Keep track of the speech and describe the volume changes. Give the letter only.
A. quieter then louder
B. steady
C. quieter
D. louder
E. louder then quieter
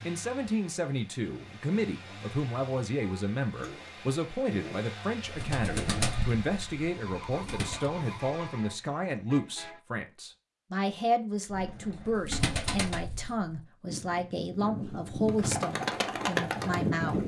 B.